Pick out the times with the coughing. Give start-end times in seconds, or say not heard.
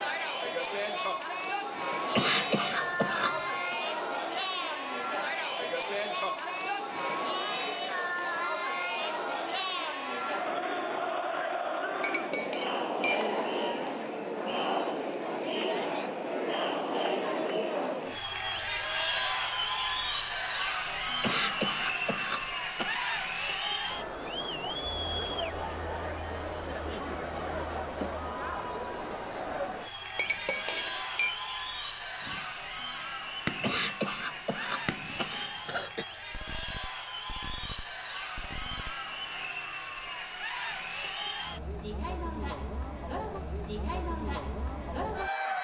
2.1-3.8, 21.2-23.0, 33.6-36.0.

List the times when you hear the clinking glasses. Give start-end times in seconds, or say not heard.
12.0-13.9, 30.1-31.4.